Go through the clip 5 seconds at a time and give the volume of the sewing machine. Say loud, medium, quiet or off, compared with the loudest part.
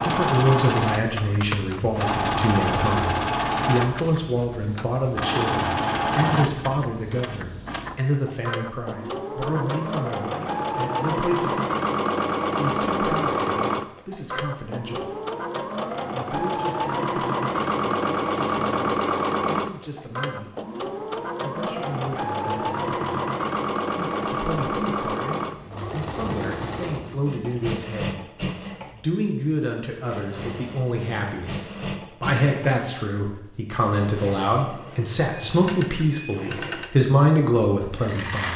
loud, loud, loud, loud, loud, medium, medium, medium.